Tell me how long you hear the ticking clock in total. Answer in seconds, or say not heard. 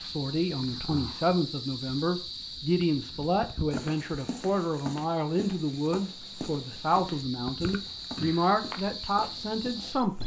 not heard.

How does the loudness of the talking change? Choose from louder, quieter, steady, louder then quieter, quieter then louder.
steady.